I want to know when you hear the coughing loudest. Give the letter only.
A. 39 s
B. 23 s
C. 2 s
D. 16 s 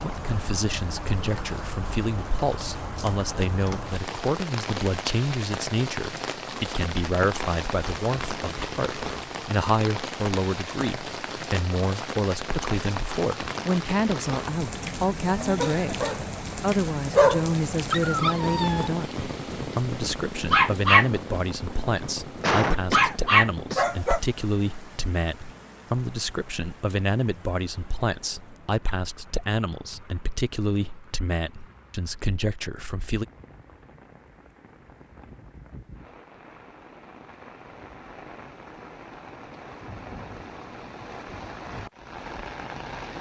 B.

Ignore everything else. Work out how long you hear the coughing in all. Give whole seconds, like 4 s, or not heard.
2 s.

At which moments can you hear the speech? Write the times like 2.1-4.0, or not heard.
0.0-33.2.